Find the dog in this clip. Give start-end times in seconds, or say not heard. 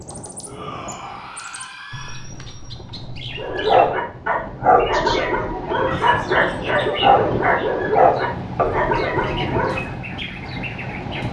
3.4-9.8.